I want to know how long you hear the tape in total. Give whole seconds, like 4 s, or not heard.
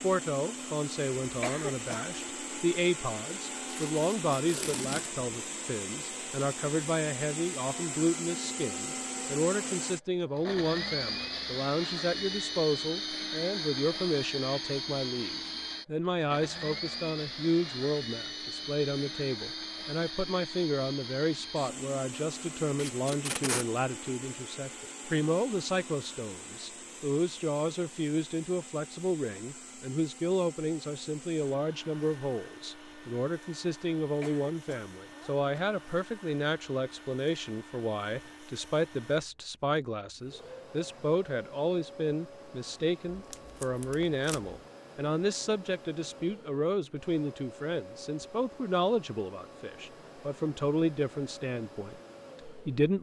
4 s.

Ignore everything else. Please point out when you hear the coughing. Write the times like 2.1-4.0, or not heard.
1.2-2.1, 34.0-35.7.